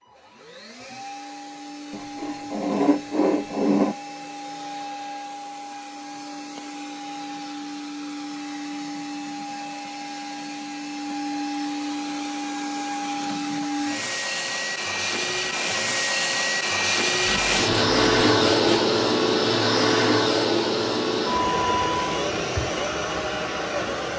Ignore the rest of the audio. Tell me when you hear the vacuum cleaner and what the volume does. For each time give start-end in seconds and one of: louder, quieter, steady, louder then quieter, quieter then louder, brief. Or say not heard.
0.0-24.1 louder.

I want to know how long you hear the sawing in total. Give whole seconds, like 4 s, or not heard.
4 s.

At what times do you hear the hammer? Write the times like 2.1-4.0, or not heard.
not heard.